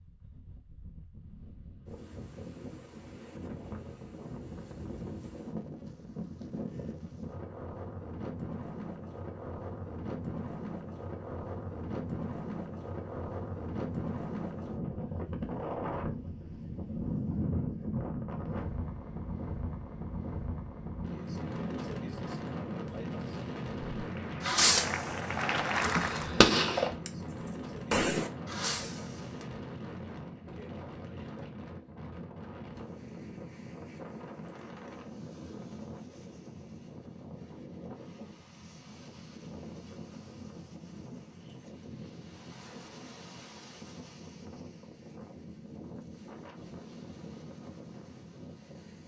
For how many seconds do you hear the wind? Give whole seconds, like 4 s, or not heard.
49 s.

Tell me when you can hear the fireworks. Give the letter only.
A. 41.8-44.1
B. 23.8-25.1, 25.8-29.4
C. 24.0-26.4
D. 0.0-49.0
B.